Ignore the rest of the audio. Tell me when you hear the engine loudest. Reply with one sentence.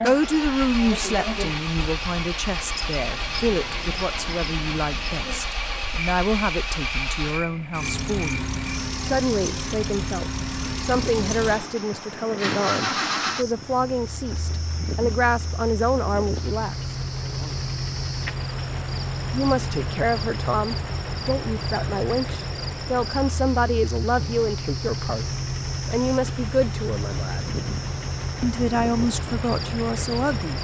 The loudest moment of the engine is at 13 seconds.